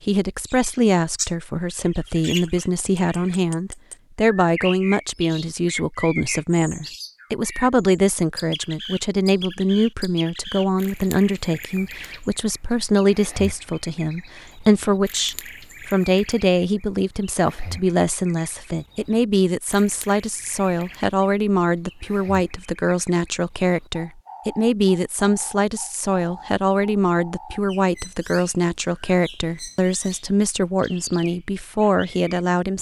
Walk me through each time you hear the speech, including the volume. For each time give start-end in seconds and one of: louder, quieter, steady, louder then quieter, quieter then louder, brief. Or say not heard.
0.1-32.7 steady.